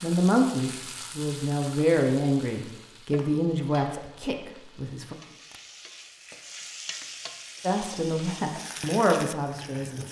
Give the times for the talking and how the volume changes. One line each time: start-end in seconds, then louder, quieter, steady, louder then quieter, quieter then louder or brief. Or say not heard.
0.0-5.2 quieter
7.6-10.0 brief.